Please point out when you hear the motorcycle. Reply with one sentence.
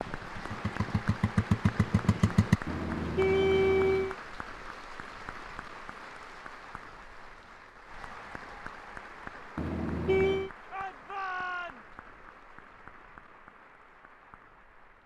The motorcycle can be heard from 0.0 to 2.6 s.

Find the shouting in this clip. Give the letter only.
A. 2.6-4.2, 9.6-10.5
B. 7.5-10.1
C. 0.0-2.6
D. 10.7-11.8
D.